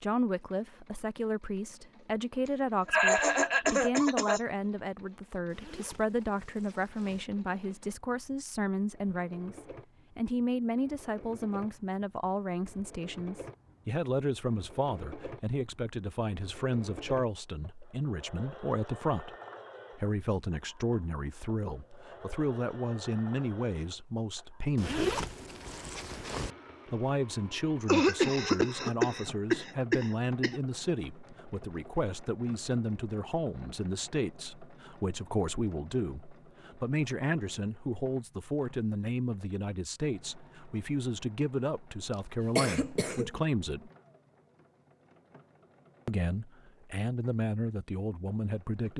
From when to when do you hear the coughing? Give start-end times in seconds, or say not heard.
2.9-4.4, 27.9-30.6, 42.5-43.4.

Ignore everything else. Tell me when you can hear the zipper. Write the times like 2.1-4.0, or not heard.
5.5-7.2, 24.8-26.6.